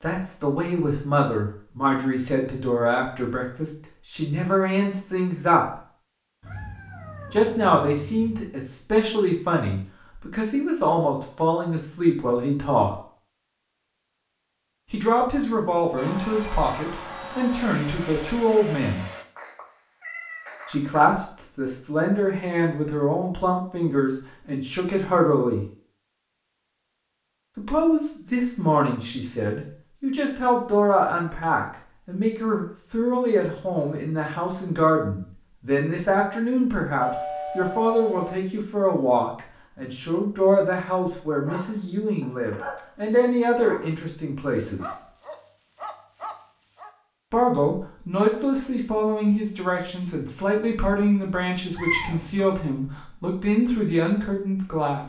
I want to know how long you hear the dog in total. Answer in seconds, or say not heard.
5 s.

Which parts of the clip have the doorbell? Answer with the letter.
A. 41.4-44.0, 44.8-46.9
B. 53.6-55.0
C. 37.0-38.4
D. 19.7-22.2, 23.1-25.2
C.